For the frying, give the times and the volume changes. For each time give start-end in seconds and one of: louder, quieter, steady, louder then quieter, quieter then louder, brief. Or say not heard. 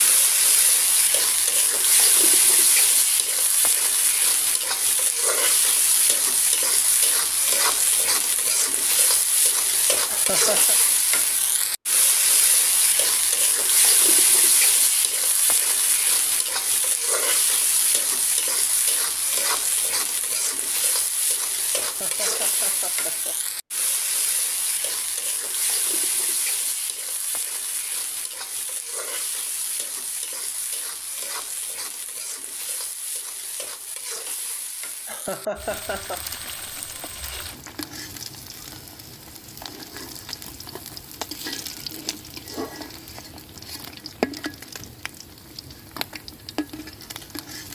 0.0-47.7 quieter.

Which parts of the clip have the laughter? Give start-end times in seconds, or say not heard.
10.1-10.8, 21.8-23.4, 35.0-36.2.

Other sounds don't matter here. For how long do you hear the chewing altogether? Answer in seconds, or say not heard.
not heard.